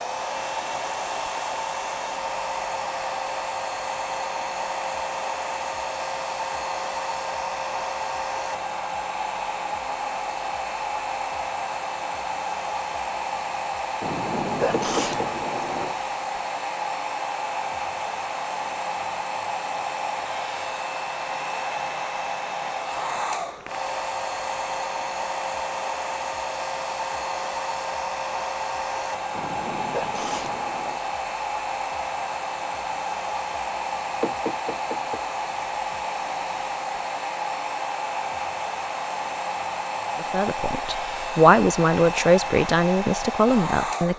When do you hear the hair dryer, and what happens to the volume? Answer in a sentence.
You can hear the hair dryer from 0.0 to 44.1 s, at a steady volume.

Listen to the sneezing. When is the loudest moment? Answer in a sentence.
The loudest moment of the sneezing is at 15 seconds.